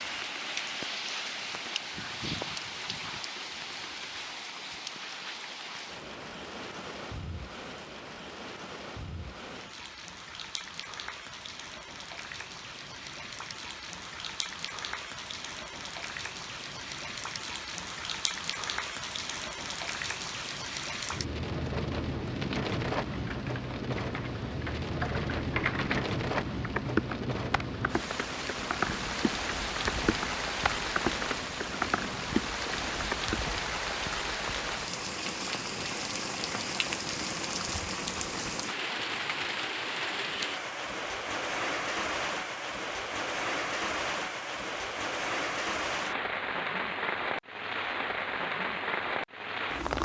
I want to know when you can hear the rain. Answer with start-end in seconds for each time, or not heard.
0.0-50.0.